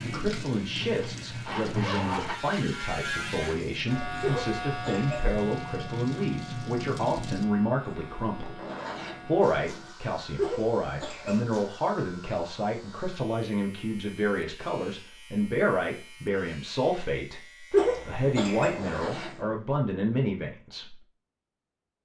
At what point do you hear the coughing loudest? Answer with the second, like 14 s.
18 s.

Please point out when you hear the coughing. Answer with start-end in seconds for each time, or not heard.
4.2-5.2, 10.3-11.4, 17.7-18.8.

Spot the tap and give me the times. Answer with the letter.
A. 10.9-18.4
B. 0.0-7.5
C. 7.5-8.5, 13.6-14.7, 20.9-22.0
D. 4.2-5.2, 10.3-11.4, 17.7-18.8
B.